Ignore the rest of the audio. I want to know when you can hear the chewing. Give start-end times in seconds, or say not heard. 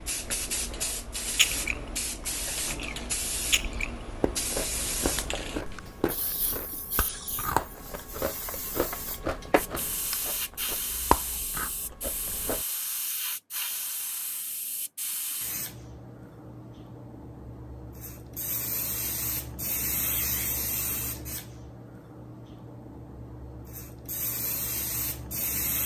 1.4-12.7.